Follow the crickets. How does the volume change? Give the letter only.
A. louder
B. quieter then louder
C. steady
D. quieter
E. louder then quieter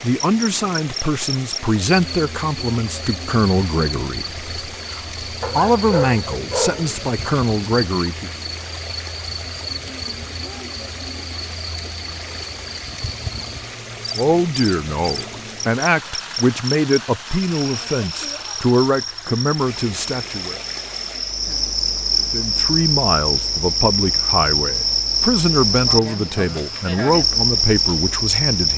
A.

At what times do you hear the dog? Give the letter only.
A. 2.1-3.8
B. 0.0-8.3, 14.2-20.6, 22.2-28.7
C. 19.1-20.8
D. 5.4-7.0
D.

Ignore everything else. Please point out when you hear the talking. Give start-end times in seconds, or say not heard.
0.0-8.3, 14.2-20.6, 22.2-28.7.